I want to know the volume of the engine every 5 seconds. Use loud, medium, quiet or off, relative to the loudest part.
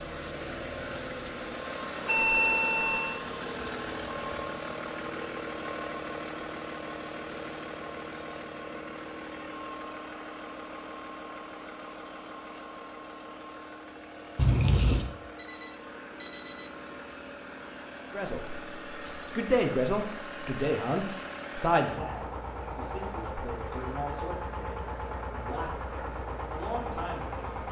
loud, loud, medium, medium, loud, loud.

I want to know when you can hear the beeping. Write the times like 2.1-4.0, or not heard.
2.0-3.2, 15.3-16.7.